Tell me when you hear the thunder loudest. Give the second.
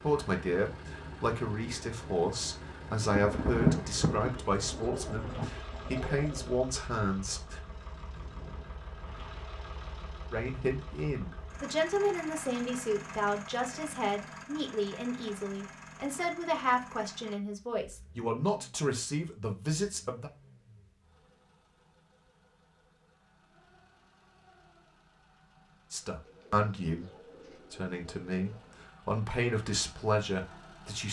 4 s.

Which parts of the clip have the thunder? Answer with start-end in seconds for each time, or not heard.
3.0-5.6.